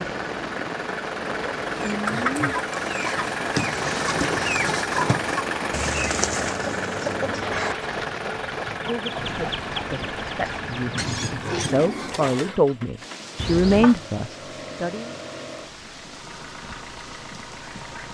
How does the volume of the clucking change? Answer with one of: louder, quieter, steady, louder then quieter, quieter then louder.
quieter.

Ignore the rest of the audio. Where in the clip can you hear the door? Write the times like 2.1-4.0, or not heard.
not heard.